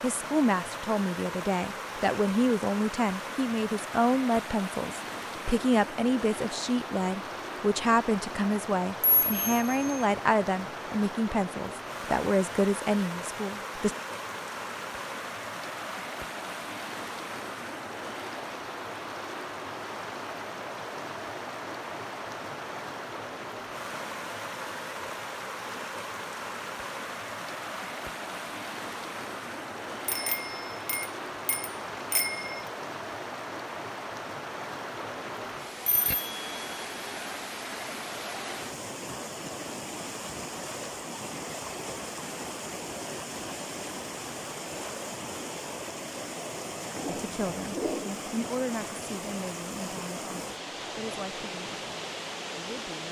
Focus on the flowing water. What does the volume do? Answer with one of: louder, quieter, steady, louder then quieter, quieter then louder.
steady.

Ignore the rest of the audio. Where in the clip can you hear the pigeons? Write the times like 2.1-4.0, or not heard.
46.9-48.3.